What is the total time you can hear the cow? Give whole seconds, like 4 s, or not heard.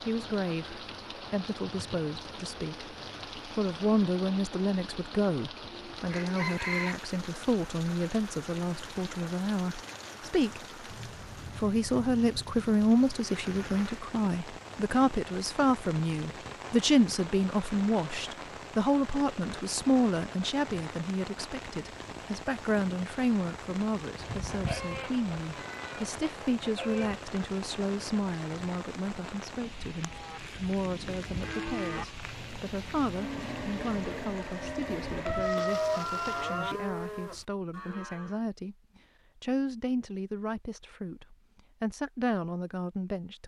8 s.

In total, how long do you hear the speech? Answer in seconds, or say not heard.
42 s.